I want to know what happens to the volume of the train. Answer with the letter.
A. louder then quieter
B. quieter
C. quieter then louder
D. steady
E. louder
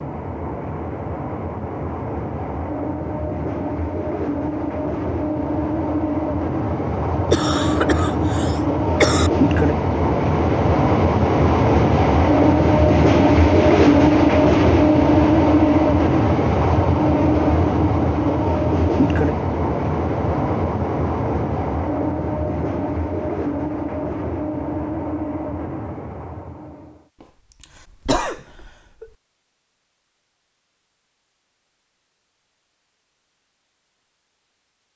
A.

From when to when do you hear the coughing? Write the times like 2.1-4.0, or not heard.
7.3-9.3, 27.6-29.1.